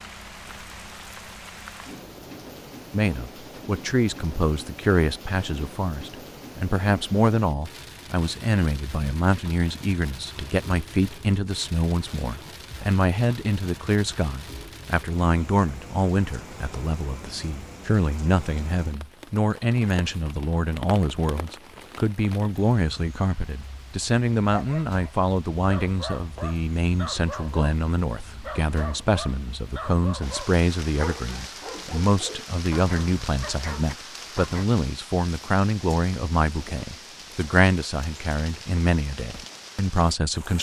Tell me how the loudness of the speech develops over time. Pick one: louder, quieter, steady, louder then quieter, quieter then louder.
steady.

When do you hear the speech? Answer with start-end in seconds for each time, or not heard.
2.9-40.5.